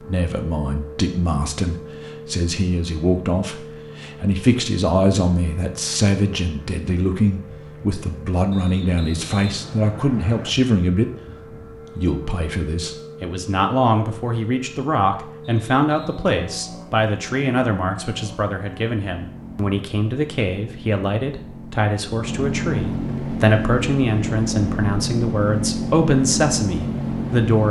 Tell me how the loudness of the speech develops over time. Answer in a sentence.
The loudness of the speech stays about the same.